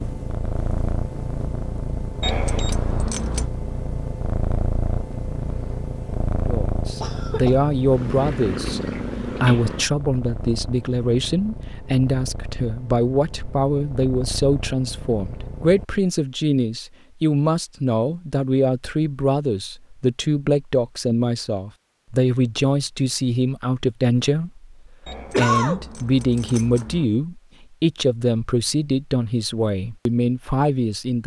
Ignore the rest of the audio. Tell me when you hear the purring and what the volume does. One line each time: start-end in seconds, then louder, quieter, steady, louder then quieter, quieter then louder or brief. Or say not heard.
0.0-15.8 quieter.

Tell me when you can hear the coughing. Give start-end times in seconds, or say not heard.
7.0-7.6, 25.3-25.9.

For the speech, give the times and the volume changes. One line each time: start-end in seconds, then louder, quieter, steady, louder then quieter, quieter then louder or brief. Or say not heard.
6.5-31.2 steady.